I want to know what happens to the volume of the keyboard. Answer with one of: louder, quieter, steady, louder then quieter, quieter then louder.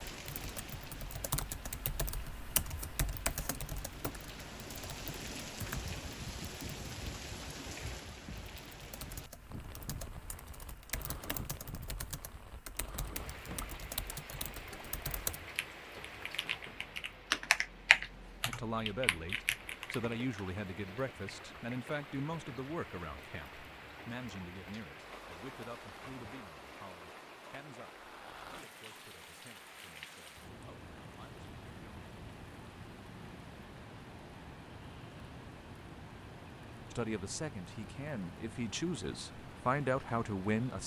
quieter then louder.